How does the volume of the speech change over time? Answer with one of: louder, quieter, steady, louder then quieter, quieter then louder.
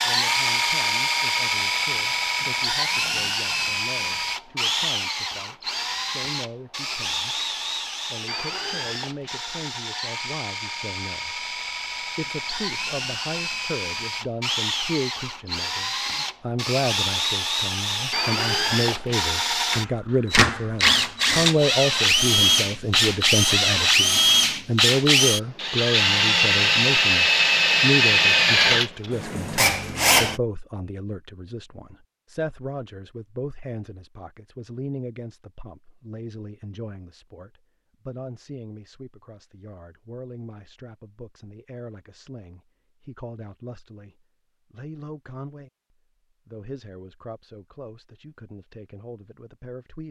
louder then quieter.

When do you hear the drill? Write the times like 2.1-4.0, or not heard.
0.0-30.4.